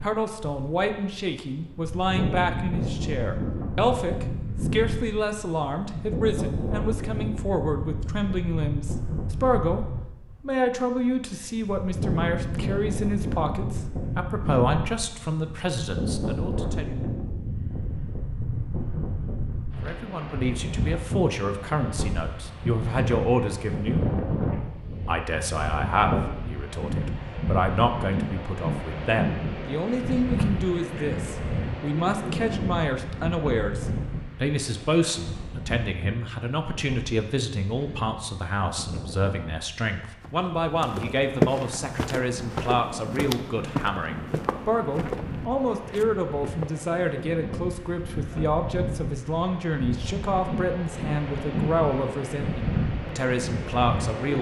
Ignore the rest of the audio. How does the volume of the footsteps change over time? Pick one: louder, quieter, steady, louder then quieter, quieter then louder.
quieter.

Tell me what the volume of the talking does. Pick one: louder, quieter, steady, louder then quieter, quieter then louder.
steady.